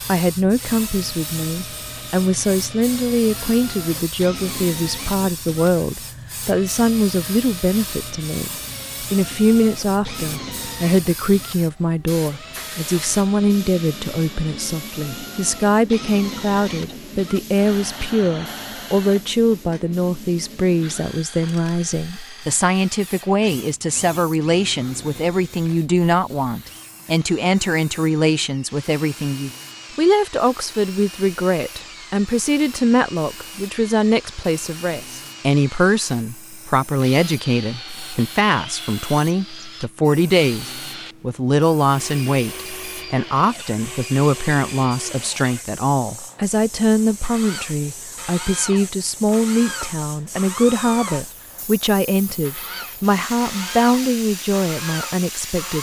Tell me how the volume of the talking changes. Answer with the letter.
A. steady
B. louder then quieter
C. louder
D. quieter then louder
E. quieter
A.